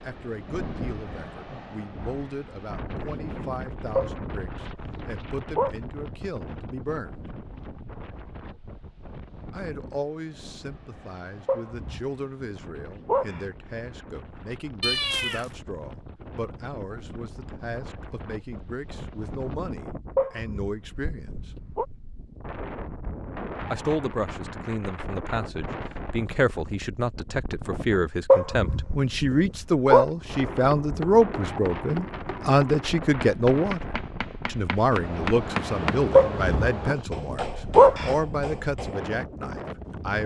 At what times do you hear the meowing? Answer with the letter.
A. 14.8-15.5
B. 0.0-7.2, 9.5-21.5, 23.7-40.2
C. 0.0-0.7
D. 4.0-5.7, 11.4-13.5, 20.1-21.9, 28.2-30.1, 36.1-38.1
A.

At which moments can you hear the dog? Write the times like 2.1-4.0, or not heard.
4.0-5.7, 11.4-13.5, 20.1-21.9, 28.2-30.1, 36.1-38.1.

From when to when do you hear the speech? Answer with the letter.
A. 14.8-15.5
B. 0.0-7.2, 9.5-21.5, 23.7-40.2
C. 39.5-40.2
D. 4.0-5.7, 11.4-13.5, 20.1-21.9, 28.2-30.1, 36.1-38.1
B.